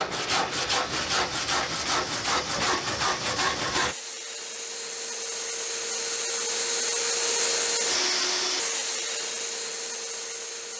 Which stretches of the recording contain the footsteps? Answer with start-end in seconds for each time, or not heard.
not heard.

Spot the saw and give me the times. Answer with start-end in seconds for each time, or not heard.
0.0-4.0.